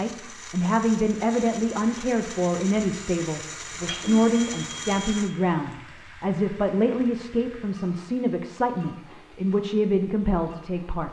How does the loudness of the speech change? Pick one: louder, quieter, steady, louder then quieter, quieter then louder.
steady.